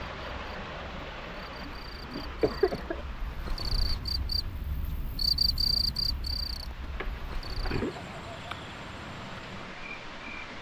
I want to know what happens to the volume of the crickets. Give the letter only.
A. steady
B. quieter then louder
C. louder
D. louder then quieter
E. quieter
D.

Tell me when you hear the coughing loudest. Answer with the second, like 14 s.
3 s.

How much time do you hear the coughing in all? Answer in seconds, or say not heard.
3 s.